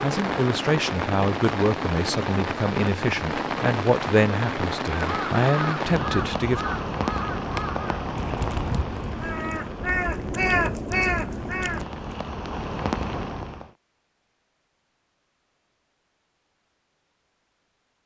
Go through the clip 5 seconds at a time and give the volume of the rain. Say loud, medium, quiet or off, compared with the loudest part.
loud, loud, medium, off.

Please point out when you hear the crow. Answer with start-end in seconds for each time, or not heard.
4.8-12.2.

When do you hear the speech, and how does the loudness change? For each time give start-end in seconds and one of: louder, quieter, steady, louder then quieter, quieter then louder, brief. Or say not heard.
0.0-6.6 steady.